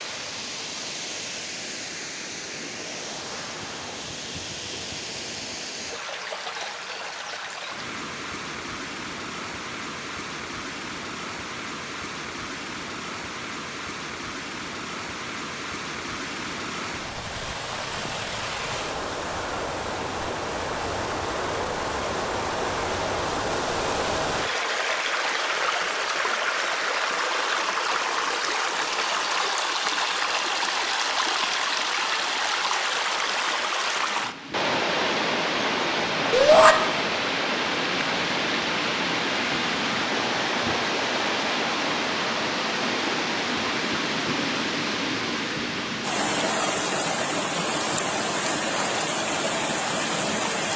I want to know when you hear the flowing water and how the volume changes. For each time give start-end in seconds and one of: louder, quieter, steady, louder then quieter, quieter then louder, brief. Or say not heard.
0.0-50.7 louder.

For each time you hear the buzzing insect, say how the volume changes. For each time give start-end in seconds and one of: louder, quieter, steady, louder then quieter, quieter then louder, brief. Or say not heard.
not heard.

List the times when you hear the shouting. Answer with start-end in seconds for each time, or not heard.
36.3-36.8.